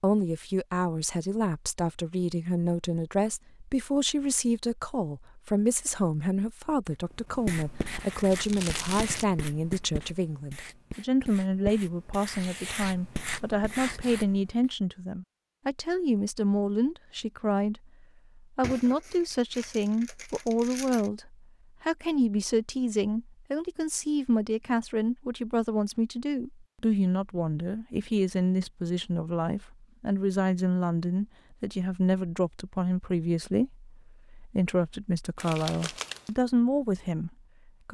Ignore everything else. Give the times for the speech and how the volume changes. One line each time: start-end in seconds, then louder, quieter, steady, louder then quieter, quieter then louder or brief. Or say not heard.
0.0-37.8 steady.